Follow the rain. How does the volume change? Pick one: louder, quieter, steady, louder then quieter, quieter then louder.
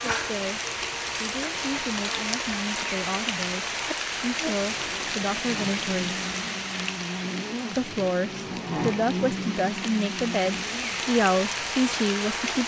quieter then louder.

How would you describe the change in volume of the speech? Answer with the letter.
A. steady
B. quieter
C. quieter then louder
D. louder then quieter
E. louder
E.